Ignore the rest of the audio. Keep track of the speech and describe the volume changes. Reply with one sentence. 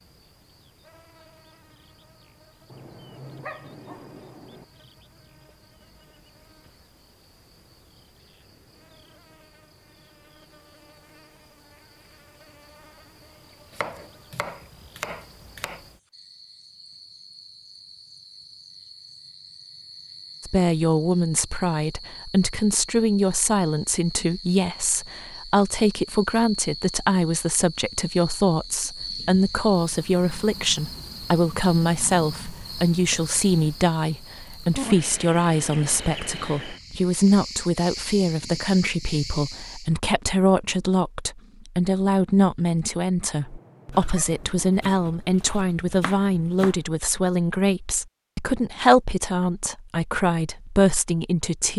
The loudness of the speech stays about the same.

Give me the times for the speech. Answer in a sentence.
You can hear the speech from 20.4 to 51.7 s.